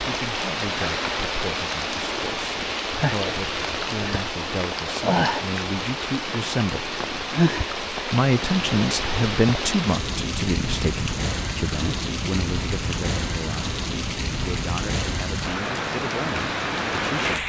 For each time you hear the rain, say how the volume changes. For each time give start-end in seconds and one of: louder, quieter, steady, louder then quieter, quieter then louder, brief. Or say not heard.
0.0-17.4 steady.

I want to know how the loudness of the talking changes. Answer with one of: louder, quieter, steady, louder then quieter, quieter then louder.
louder then quieter.